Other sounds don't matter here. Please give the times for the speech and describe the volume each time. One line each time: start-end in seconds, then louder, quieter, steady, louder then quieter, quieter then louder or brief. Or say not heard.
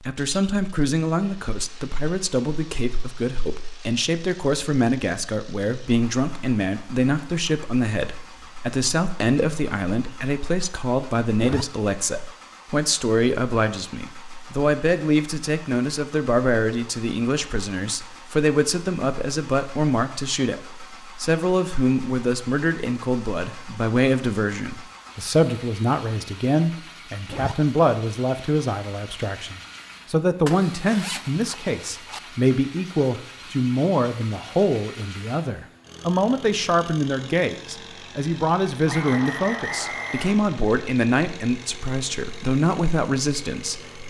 0.0-44.0 steady.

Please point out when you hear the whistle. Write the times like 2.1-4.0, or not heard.
38.9-40.4.